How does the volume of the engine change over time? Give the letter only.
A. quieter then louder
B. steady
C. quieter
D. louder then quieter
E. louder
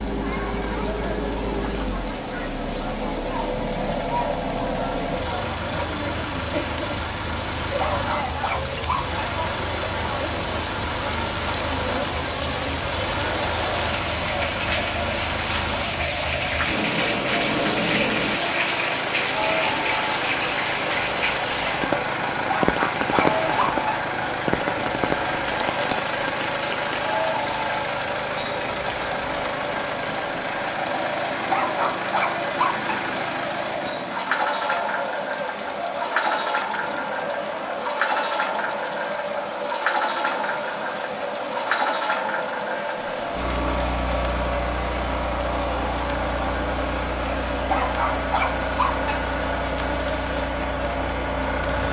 B.